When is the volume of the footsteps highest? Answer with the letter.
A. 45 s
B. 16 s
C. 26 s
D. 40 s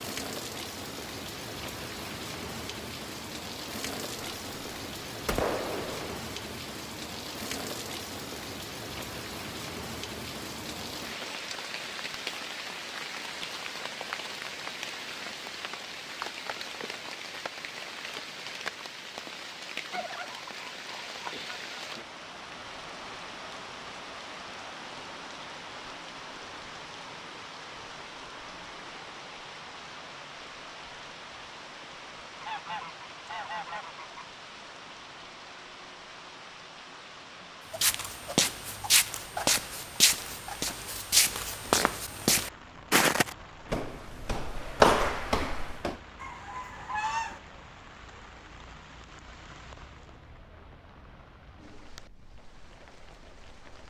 A.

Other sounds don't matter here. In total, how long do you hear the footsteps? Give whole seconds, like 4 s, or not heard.
8 s.